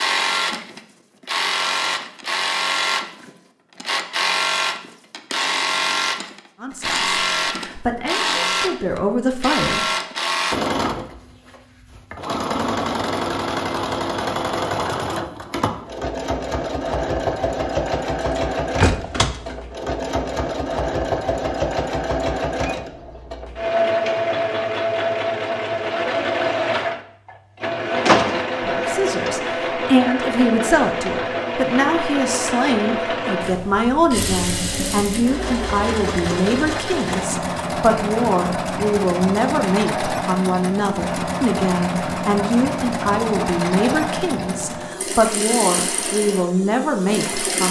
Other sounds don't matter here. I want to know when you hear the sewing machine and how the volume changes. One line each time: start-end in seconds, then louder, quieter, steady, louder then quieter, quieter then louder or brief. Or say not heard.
0.0-47.6 steady.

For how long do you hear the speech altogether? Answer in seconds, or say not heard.
22 s.